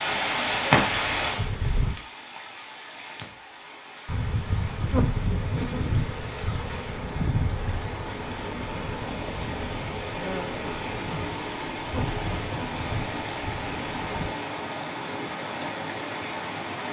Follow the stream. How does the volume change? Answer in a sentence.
The volume of the stream goes down, then up.